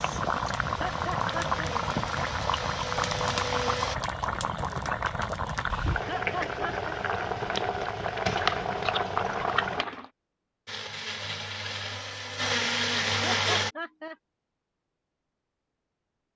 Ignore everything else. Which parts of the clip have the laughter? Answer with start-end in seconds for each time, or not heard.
0.7-1.8, 6.0-7.0, 13.2-14.2.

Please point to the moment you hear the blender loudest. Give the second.
13 s.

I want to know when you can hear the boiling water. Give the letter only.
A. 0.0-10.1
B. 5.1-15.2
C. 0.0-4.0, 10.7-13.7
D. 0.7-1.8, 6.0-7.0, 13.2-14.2
A.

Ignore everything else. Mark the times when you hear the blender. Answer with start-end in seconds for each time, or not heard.
0.0-4.0, 10.7-13.7.